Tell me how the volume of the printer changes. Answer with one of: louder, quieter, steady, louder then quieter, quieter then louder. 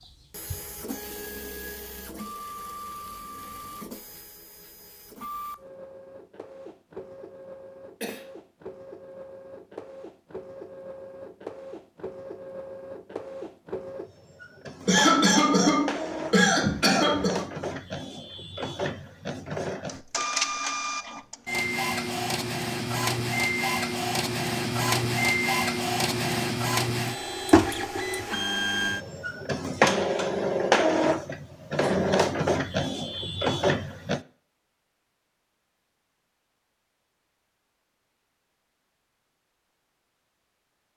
louder.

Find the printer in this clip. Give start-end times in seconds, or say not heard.
0.0-34.2.